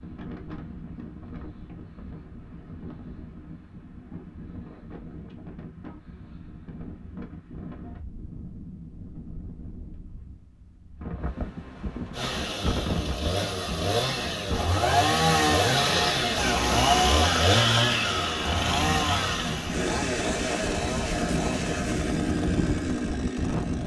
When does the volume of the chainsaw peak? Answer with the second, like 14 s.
17 s.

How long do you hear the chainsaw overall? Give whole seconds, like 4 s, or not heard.
12 s.